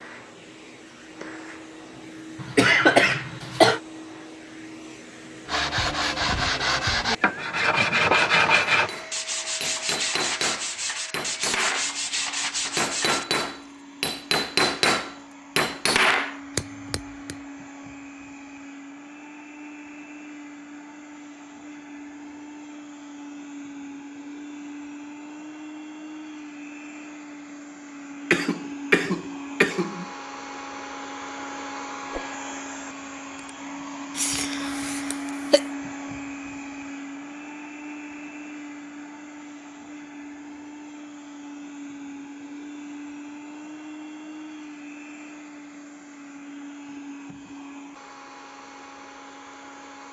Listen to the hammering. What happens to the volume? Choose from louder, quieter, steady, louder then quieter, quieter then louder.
louder.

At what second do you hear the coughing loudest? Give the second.
3 s.